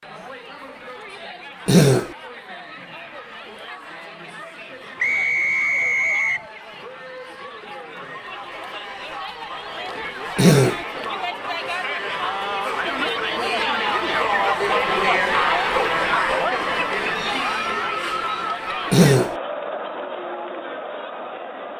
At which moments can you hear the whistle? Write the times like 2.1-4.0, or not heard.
5.0-6.5.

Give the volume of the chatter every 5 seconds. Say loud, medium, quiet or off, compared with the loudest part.
quiet, quiet, loud, loud, medium.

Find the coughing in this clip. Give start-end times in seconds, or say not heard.
1.6-2.1, 10.3-10.8, 18.9-19.4.